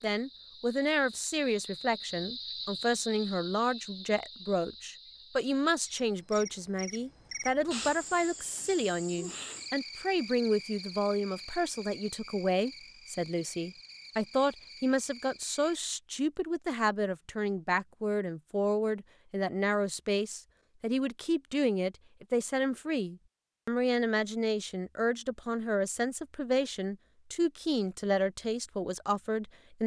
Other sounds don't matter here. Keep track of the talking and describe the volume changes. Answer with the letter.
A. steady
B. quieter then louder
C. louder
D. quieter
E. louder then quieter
A.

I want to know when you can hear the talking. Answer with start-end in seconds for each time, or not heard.
0.0-29.8.